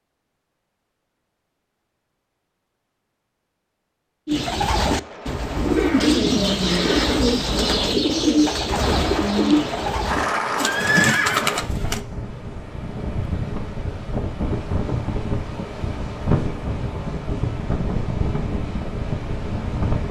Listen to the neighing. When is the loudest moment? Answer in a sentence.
The loudest moment of the neighing is at 11 seconds.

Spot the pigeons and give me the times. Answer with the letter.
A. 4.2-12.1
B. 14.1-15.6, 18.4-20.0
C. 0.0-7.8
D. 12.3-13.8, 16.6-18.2
A.